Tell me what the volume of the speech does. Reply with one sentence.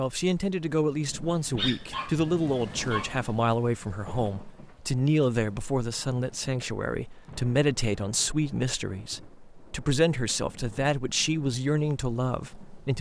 The volume of the speech stays about the same.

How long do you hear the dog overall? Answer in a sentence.
You can hear the dog for 2 seconds altogether.